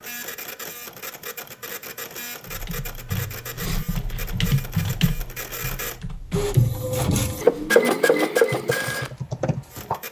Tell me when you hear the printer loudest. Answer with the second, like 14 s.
8 s.